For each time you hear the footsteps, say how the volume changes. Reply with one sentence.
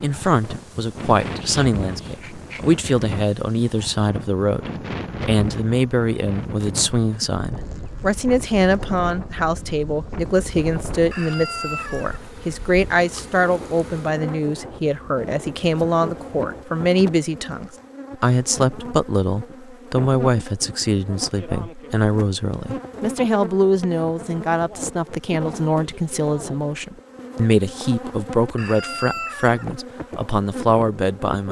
The footsteps can't be heard in this clip.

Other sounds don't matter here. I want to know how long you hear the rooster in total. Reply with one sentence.
You can hear the rooster for 2 seconds altogether.